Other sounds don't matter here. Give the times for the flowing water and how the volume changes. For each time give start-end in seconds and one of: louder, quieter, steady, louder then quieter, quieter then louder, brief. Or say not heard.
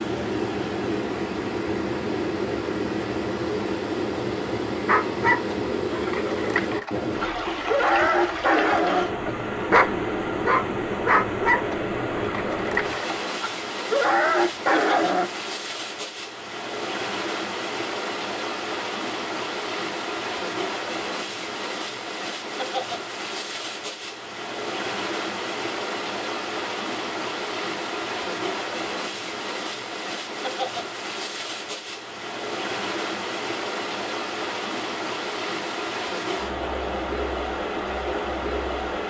0.0-39.0 steady.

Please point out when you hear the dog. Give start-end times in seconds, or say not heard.
4.8-15.3.